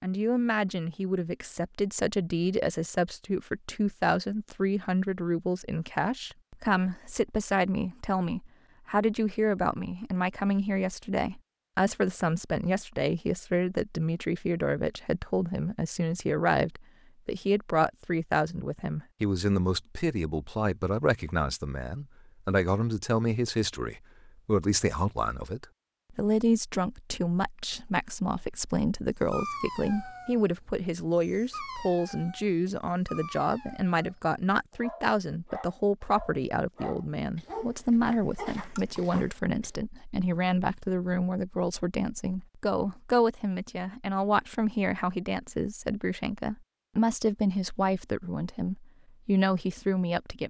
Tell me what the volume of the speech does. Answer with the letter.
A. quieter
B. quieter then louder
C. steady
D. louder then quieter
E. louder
C.